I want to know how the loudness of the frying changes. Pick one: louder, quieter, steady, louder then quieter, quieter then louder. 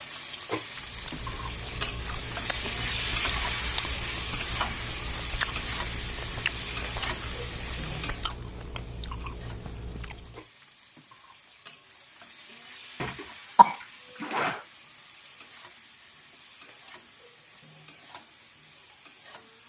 quieter.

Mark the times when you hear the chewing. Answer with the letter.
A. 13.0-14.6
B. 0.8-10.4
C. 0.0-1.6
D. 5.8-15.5
B.